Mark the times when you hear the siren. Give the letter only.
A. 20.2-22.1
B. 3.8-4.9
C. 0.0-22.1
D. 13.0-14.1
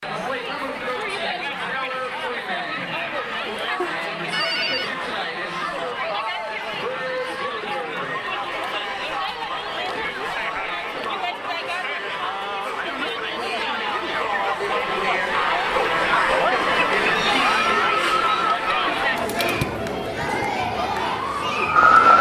A.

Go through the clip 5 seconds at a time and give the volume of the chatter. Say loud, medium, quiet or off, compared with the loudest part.
medium, medium, medium, loud, medium.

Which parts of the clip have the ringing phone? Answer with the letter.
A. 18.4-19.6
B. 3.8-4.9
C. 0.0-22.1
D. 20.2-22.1
B.